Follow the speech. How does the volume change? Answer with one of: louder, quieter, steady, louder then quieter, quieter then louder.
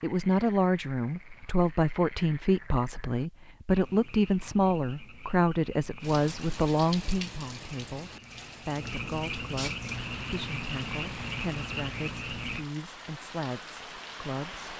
quieter.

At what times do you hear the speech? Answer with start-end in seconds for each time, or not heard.
0.0-14.7.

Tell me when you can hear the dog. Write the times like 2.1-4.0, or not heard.
not heard.